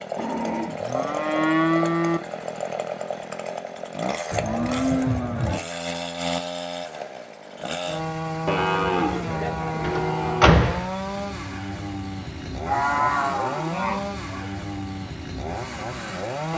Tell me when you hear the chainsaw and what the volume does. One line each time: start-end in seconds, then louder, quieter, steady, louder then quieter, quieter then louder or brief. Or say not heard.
0.0-16.5 steady.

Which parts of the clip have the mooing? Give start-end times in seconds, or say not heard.
0.1-2.2, 4.3-5.6, 8.4-10.5, 12.7-14.4.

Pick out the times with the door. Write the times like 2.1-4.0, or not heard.
9.8-10.9.